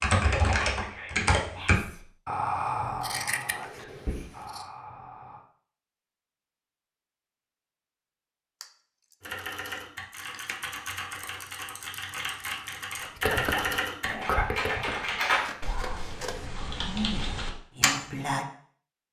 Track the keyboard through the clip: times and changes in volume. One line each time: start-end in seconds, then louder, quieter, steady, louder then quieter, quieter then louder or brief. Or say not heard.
0.0-1.8 brief
9.2-17.9 louder then quieter.